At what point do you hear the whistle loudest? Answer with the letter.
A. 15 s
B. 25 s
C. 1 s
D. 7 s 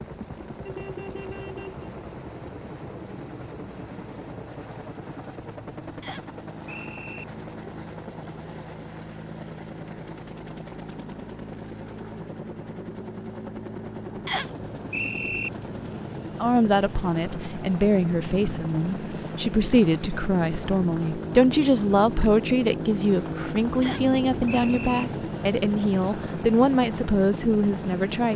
A.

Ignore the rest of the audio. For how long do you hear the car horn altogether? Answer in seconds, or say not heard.
2 s.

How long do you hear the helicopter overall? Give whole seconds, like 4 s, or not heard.
28 s.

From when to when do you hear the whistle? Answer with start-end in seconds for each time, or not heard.
6.0-7.2, 14.2-15.5, 23.8-25.1.